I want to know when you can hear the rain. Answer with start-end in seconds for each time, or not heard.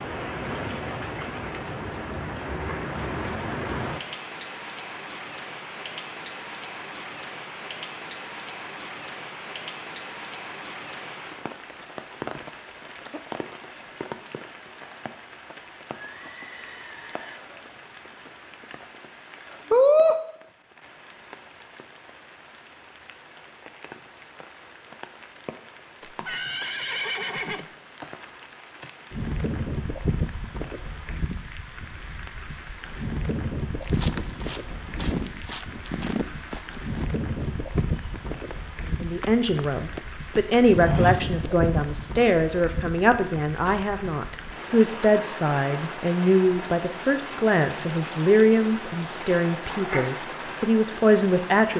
0.0-51.7.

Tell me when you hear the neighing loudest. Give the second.
27 s.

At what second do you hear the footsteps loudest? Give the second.
41 s.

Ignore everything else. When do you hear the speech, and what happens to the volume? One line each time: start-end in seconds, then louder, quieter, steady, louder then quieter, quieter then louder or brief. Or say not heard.
39.0-51.7 steady.